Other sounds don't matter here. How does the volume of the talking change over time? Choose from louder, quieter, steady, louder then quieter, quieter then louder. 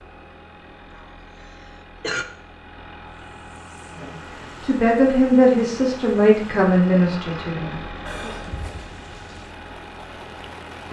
quieter.